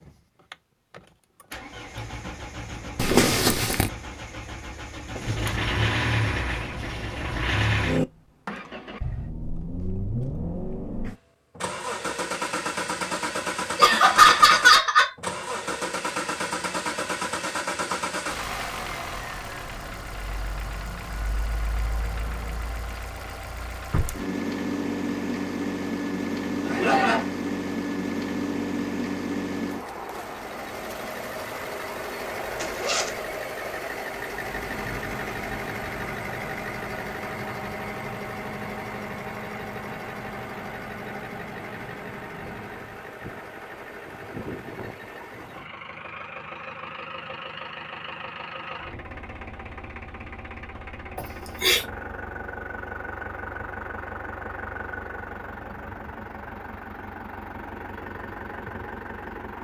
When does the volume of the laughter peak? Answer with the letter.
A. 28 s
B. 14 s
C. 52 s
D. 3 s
B.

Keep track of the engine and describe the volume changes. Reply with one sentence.
The volume of the engine goes down.